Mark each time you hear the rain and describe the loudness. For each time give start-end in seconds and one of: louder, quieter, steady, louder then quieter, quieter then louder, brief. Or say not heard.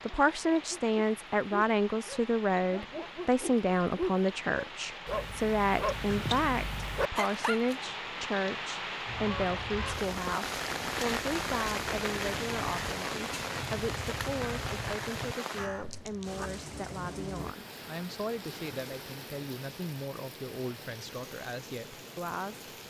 0.0-22.8 louder then quieter.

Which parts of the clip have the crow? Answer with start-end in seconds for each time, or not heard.
9.1-16.5.